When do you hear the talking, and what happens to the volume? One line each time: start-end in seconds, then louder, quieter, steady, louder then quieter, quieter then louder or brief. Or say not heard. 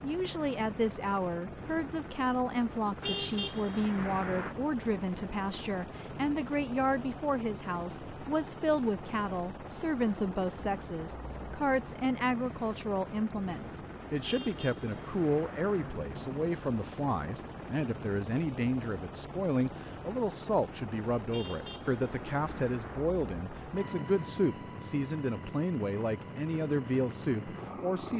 0.0-28.1 steady.